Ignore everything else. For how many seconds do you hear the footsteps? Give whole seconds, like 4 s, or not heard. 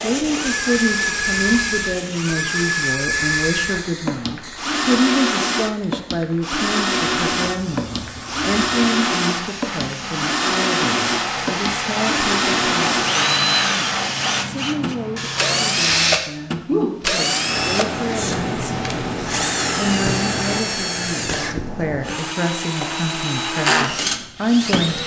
not heard.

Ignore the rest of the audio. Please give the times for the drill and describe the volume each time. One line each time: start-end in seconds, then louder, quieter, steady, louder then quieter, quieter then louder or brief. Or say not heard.
0.2-25.0 steady.